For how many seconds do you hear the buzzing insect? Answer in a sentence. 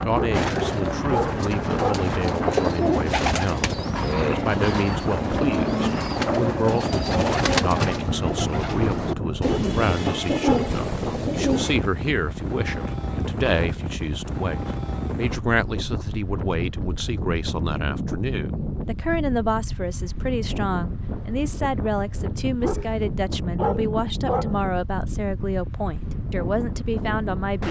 You can't hear the buzzing insect here.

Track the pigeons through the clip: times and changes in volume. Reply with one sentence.
You can hear the pigeons from 0.3 to 11.8 s, at a steady volume.